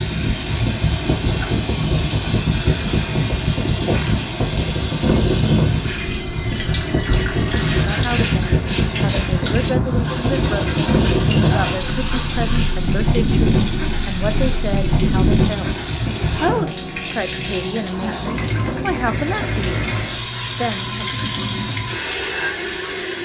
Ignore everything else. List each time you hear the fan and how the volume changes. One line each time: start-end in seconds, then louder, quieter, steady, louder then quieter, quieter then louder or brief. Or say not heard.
0.0-16.6 steady.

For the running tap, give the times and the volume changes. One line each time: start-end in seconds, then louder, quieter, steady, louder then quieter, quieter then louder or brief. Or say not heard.
0.0-23.2 steady.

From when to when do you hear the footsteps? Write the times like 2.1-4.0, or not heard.
not heard.